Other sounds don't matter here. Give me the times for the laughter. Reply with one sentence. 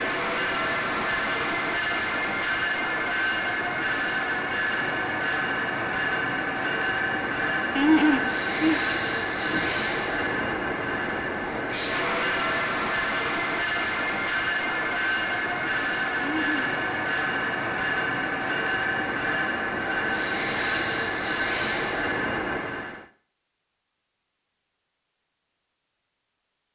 The laughter can be heard from 7.8 to 9.8 s and from 16.2 to 16.6 s.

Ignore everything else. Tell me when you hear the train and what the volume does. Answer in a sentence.
The train can be heard from 0.0 to 23.1 s, at a steady volume.